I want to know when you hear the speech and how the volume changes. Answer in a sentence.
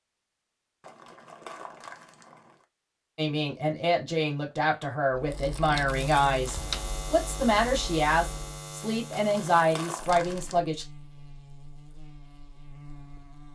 The speech can be heard from 3.1 to 10.8 s, at a steady volume.